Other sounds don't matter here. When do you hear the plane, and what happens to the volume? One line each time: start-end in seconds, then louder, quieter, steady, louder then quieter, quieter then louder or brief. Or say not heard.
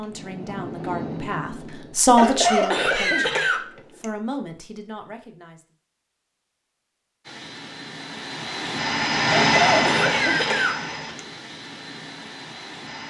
0.0-2.0 brief
7.2-13.0 louder then quieter.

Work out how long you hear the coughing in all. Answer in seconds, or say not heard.
4 s.